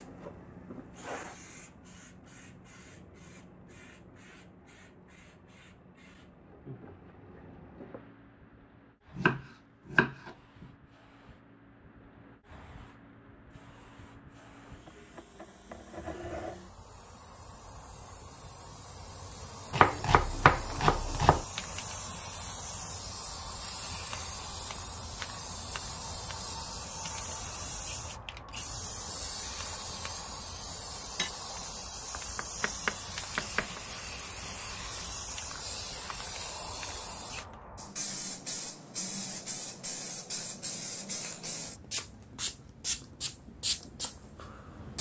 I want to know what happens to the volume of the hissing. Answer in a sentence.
The volume of the hissing goes up.